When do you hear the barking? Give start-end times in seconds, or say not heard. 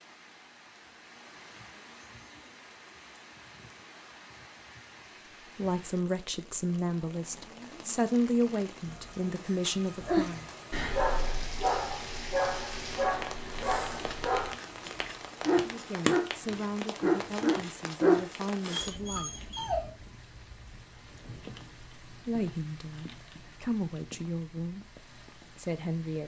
9.7-19.9.